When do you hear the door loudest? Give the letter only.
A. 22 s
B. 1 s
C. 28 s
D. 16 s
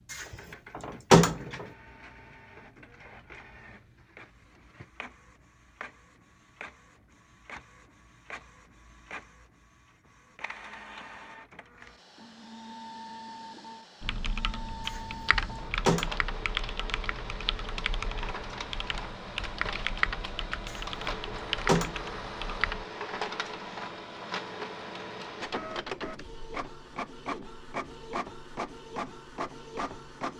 B.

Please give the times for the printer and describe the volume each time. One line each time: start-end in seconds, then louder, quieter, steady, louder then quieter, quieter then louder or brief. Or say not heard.
0.0-30.3 louder.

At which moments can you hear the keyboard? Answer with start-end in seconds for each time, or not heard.
14.0-22.9.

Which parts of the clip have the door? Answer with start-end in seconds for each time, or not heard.
0.1-1.6, 14.8-16.4, 20.7-22.2.